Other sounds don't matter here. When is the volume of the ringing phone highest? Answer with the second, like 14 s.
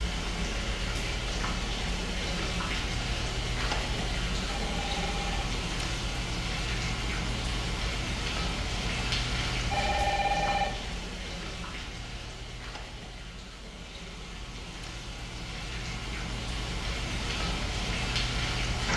10 s.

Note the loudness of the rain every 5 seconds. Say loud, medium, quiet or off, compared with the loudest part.
loud, loud, medium, loud.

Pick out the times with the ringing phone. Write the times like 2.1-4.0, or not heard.
4.5-5.5, 9.7-10.8.